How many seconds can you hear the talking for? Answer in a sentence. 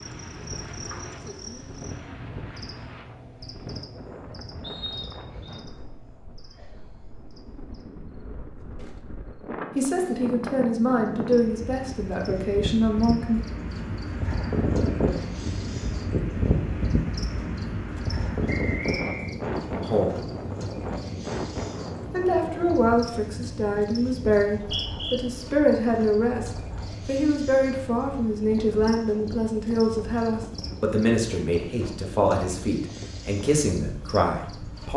You can hear the talking for 17 seconds altogether.